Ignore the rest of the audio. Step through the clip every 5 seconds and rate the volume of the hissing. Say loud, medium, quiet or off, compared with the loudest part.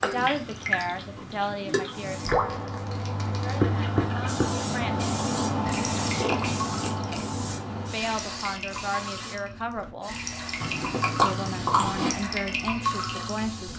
loud, loud, medium.